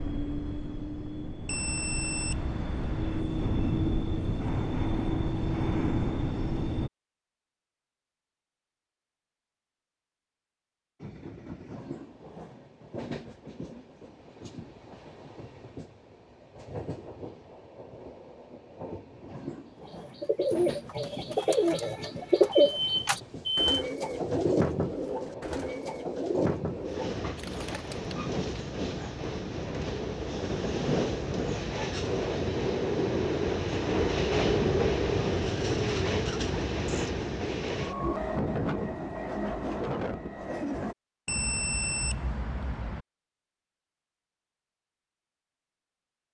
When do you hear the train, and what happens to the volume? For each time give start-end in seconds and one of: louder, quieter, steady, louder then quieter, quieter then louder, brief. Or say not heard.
0.0-6.9 louder
11.0-41.0 louder.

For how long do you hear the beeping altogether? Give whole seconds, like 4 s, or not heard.
5 s.